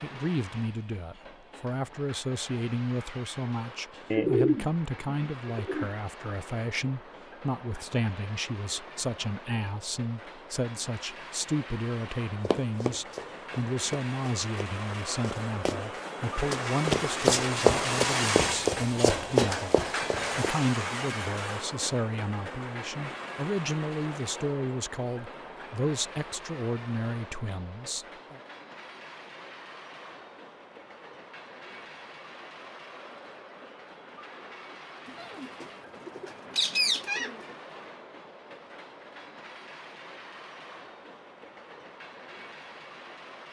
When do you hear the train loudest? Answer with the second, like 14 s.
18 s.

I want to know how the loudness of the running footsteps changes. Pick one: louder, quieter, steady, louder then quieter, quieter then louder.
louder.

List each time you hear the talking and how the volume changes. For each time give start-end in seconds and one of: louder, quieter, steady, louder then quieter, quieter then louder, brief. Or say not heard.
0.0-28.4 steady.